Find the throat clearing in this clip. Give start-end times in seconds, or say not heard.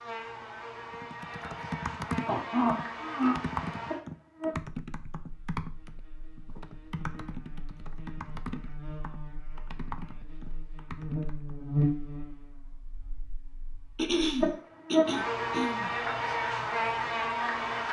2.2-3.4, 13.9-15.9.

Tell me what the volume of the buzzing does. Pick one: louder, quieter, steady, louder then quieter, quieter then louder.
quieter then louder.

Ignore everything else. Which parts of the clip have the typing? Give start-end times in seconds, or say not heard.
0.9-11.7.